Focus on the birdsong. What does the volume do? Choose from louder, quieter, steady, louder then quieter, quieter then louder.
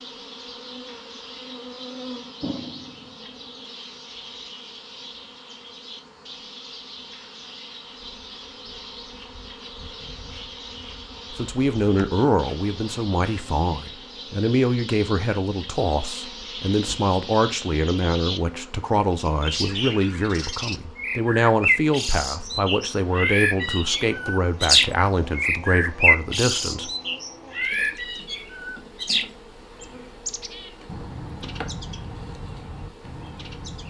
louder then quieter.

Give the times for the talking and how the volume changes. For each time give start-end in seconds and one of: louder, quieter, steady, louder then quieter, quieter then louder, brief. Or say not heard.
11.3-26.9 steady.